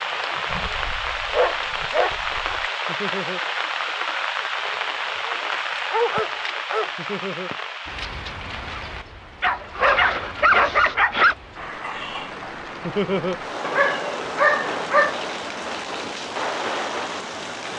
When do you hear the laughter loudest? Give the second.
13 s.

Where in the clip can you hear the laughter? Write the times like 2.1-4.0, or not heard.
2.9-3.4, 7.0-7.5, 12.8-13.3.